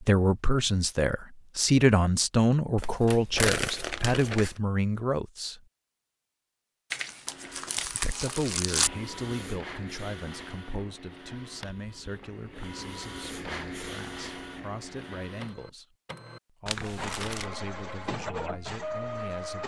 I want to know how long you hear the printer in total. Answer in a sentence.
You can hear the printer for 12 seconds altogether.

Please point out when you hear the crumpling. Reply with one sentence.
The crumpling can be heard from 2.8 to 4.5 s, from 6.9 to 8.9 s and from 16.6 to 17.5 s.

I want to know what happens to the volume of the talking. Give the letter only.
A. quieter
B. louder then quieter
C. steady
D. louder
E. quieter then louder
A.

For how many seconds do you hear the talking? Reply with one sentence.
You can hear the talking for 17 seconds altogether.